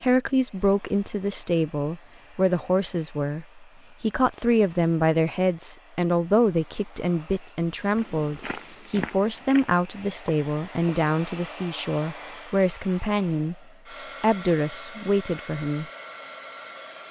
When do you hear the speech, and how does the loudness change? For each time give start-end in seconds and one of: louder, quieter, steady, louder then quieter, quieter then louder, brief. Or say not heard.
0.0-13.6 steady
14.2-15.8 brief.